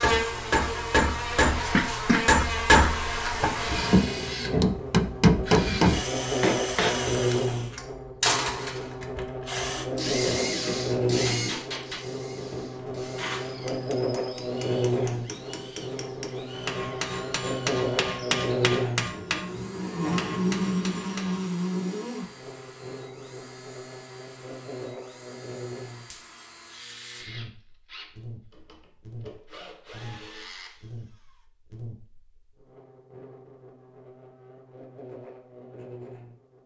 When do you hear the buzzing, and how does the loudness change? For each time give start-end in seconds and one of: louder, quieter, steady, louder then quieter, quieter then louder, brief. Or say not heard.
0.0-36.6 quieter.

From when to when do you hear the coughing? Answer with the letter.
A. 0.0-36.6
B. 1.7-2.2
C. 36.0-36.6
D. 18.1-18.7
B.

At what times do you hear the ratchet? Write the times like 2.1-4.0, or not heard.
not heard.